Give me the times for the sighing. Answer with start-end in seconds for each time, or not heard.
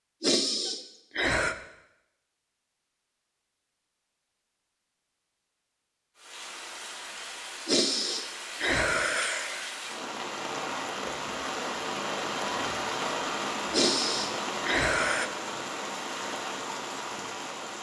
0.2-1.6, 7.7-9.8, 13.7-15.3.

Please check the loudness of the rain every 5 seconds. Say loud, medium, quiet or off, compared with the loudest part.
off, medium, loud, loud.